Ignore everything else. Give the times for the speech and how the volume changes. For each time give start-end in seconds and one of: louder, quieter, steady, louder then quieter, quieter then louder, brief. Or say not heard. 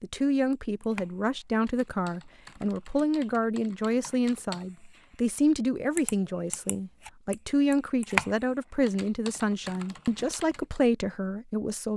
0.0-11.9 steady.